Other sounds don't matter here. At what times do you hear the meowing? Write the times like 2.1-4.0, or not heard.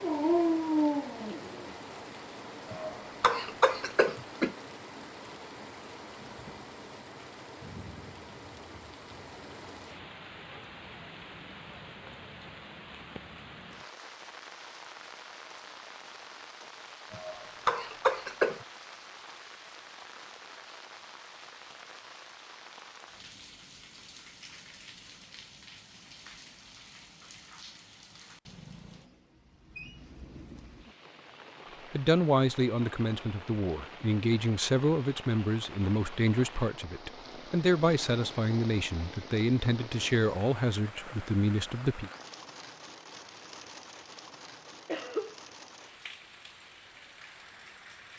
not heard.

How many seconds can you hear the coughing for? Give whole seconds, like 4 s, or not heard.
4 s.